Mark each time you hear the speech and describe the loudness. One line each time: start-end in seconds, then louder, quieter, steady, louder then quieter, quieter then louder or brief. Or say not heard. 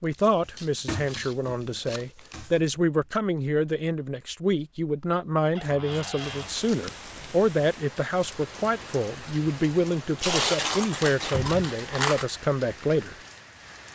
0.0-13.2 steady.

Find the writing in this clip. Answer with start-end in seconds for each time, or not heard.
not heard.